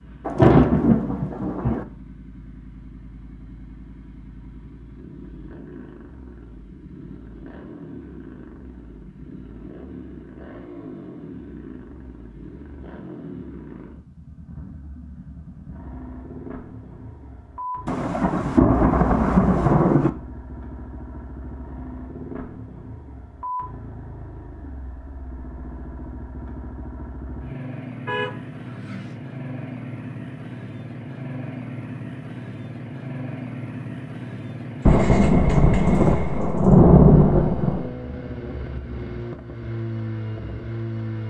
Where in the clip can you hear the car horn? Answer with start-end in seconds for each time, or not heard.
28.1-29.1.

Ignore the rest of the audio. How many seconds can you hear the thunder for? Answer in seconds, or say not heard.
7 s.